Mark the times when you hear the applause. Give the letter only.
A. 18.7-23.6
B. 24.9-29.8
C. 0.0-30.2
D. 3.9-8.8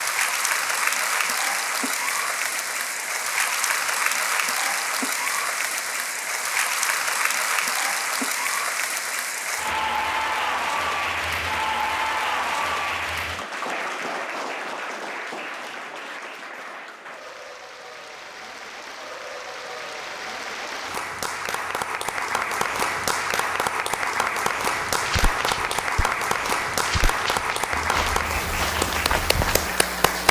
C.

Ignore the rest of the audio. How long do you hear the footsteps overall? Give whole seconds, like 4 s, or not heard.
5 s.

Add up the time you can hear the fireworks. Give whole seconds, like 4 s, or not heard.
not heard.